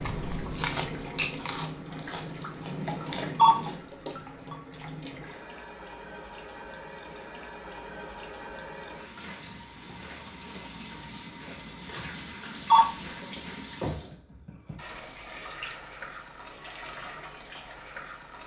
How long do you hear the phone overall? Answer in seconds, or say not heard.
2 s.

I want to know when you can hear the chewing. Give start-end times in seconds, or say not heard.
0.0-3.9.